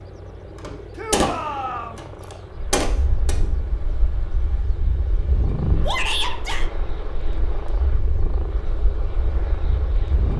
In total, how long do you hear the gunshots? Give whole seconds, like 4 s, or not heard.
3 s.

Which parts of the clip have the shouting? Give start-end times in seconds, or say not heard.
0.9-2.0, 5.8-6.7.